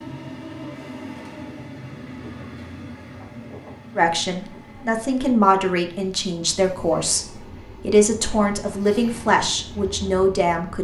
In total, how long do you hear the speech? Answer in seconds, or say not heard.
7 s.